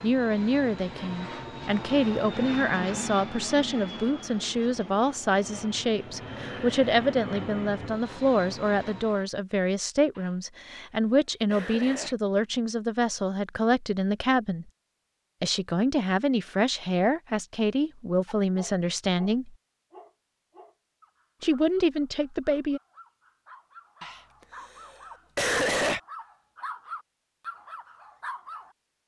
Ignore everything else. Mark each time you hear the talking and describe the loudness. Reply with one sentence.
The talking can be heard from 0.0 to 14.7 s, at a steady volume; from 15.4 to 19.6 s, at a steady volume; and briefly from 21.4 to 22.8 s.